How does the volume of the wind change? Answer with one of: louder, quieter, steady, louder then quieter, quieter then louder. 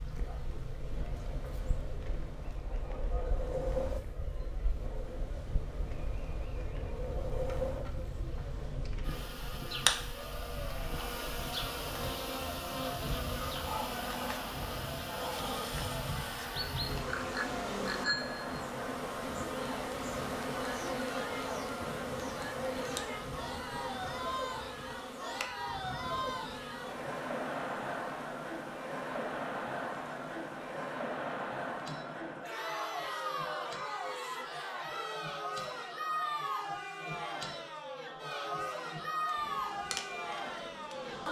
quieter.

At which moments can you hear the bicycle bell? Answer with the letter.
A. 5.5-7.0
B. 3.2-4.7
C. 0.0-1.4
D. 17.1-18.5
D.